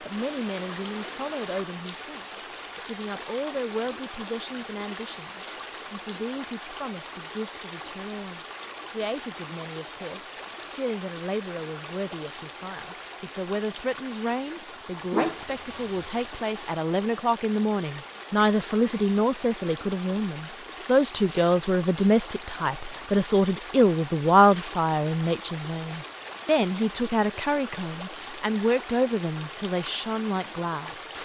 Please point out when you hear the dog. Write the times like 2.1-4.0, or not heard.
15.0-16.3.